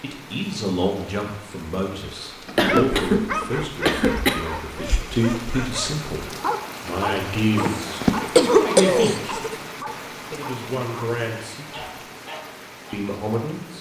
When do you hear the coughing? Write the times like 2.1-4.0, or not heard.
2.5-4.4, 7.5-9.6.